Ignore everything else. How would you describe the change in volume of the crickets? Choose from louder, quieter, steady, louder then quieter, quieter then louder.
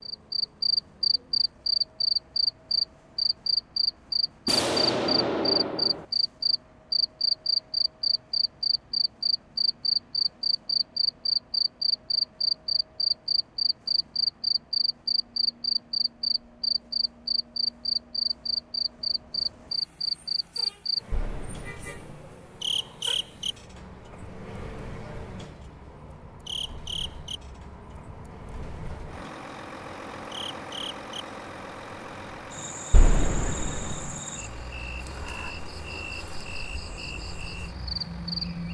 quieter.